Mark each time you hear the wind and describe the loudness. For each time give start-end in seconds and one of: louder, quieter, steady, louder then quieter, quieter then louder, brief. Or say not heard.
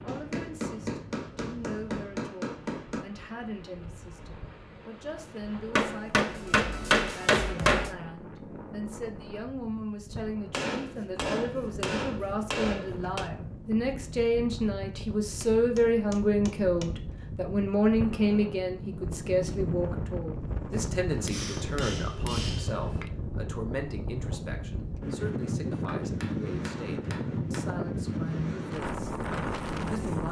0.0-30.2 louder.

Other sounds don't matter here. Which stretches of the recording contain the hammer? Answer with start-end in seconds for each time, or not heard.
0.1-3.0, 5.8-8.0, 10.5-13.3, 15.4-16.9, 21.1-23.1, 25.7-27.7.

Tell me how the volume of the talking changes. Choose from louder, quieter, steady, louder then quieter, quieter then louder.
louder then quieter.